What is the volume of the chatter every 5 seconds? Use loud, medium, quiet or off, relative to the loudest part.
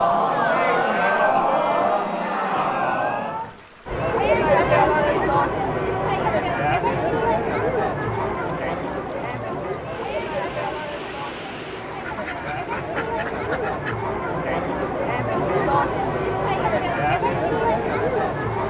loud, loud, medium, loud.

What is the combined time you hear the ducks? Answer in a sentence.
The ducks can be heard for 2 seconds in total.